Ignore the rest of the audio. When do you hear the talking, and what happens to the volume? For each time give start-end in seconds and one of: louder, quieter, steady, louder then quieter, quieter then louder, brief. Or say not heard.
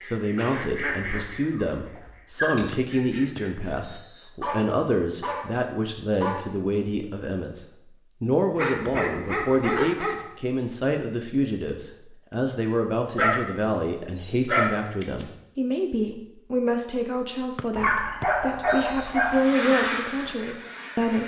0.0-21.2 steady.